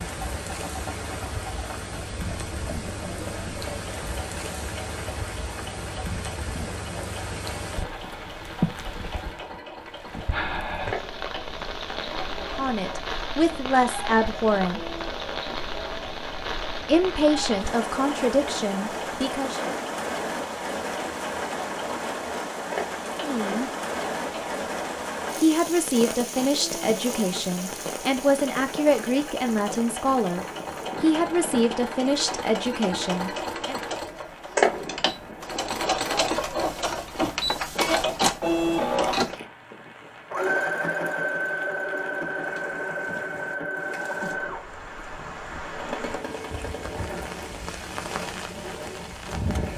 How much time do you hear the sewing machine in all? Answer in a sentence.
You can hear the sewing machine for 50 seconds altogether.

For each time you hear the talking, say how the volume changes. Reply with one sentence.
You can hear the talking briefly from 12.4 to 14.8 s; briefly from 16.9 to 19.7 s; briefly from 23.2 to 23.7 s; and from 25.4 to 33.8 s, at a steady volume.